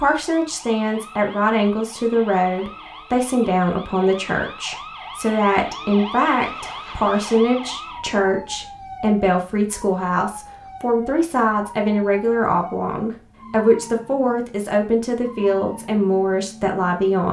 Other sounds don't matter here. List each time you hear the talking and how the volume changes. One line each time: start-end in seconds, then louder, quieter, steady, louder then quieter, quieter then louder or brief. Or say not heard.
0.0-17.2 steady.